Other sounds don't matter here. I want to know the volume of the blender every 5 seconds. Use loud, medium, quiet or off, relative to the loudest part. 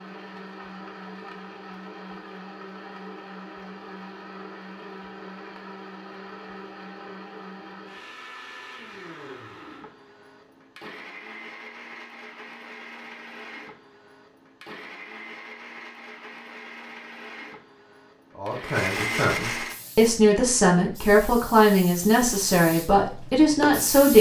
medium, medium, medium, loud, off.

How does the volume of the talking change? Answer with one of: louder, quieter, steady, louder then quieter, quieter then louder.
louder.